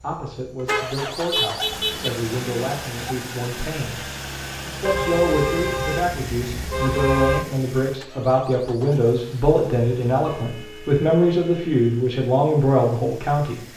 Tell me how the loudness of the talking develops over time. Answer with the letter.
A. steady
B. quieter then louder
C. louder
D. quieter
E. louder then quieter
C.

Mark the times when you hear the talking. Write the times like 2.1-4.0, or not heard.
0.0-4.0, 4.7-13.6.